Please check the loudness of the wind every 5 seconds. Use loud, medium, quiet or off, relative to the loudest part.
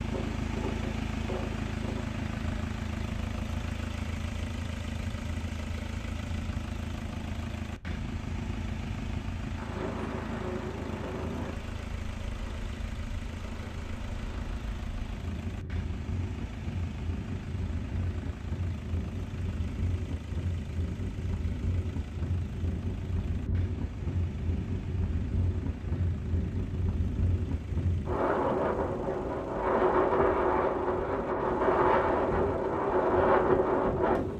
quiet, quiet, quiet, quiet, quiet, medium, loud.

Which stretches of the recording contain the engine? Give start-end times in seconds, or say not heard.
0.0-34.3.